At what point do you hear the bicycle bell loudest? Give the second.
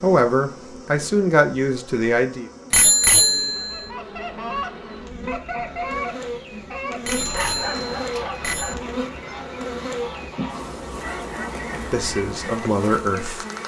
3 s.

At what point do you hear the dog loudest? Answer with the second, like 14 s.
8 s.